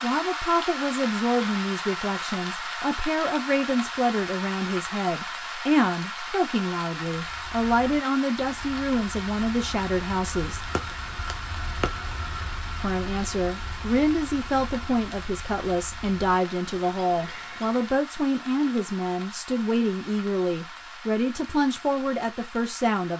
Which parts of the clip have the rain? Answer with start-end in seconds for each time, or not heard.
0.0-23.1.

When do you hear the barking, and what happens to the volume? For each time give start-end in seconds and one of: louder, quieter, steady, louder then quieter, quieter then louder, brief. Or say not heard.
not heard.